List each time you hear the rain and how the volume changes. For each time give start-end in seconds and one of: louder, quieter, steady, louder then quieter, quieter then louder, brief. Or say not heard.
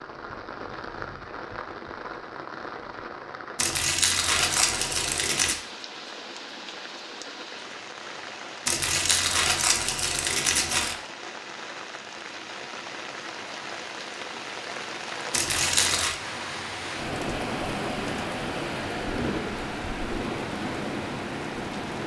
0.0-22.0 louder.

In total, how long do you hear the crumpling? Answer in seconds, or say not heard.
5 s.